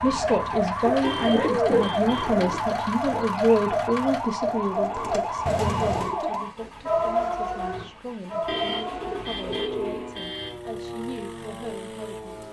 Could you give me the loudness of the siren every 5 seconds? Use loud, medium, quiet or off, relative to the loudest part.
loud, loud, medium.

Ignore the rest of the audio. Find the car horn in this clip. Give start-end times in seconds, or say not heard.
1.0-2.3, 5.5-6.2, 8.4-10.6.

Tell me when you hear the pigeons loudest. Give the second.
2 s.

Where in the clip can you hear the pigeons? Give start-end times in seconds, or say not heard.
0.8-2.6, 4.4-6.5, 8.5-10.2.